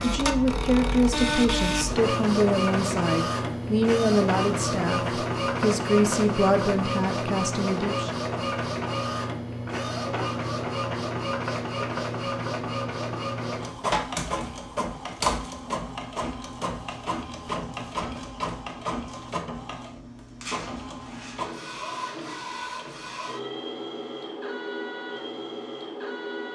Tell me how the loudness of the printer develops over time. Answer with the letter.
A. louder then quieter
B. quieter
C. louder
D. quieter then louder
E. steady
B.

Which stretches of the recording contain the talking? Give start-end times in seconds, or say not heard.
0.0-8.2.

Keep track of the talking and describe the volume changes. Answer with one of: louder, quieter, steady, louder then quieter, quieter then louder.
steady.